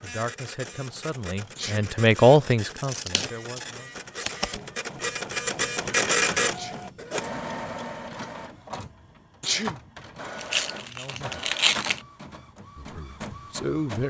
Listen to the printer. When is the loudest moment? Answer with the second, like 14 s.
6 s.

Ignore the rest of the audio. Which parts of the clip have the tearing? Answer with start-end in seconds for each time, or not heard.
2.6-4.6, 10.3-12.1.